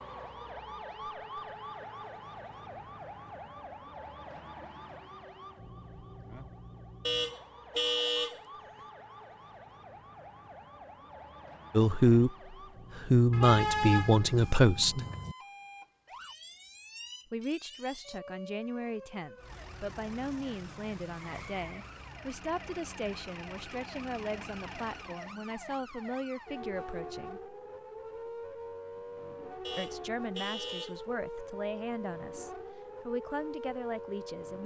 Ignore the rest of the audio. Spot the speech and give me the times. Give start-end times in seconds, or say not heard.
11.7-12.3, 12.9-15.0, 17.3-27.4, 29.8-34.6.